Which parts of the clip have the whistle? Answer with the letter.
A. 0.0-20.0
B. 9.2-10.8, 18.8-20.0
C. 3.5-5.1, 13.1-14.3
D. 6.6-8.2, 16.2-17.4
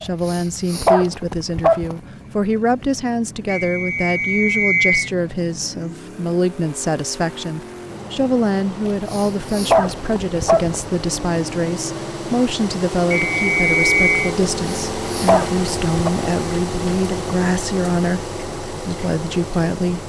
C.